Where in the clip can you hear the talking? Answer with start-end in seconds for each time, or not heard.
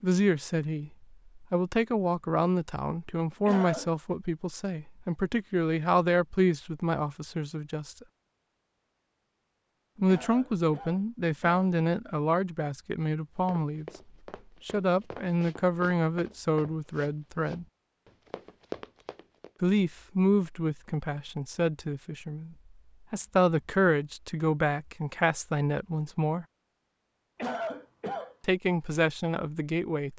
0.0-8.1, 9.9-13.8, 14.7-17.6, 19.6-26.4, 28.4-30.1.